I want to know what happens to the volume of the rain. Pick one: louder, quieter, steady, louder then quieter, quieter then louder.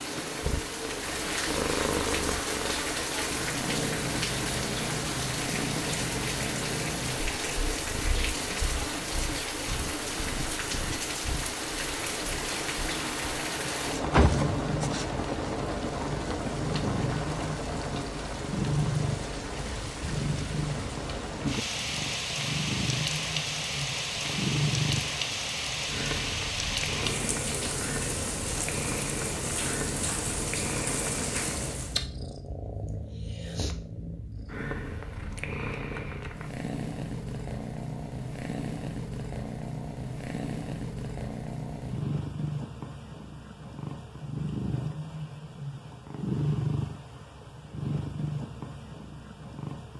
steady.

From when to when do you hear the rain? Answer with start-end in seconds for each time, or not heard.
0.0-32.0.